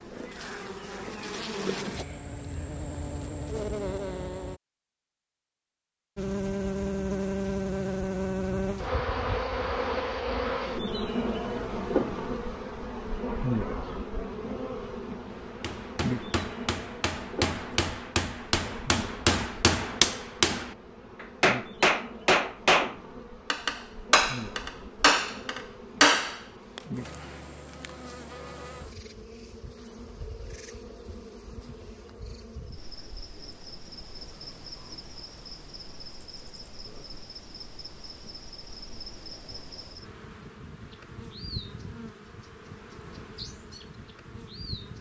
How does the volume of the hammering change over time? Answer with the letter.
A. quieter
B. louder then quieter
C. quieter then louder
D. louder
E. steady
D.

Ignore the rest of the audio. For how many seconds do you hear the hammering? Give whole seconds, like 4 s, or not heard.
12 s.